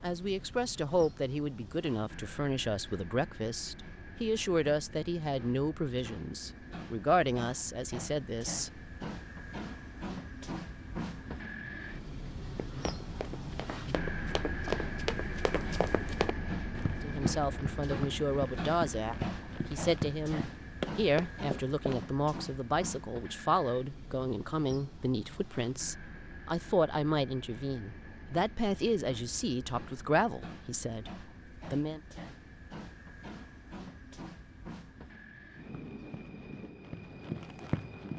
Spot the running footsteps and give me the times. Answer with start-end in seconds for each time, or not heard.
12.6-22.0, 35.7-38.1.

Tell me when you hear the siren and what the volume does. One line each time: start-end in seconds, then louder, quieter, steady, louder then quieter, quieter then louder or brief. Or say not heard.
not heard.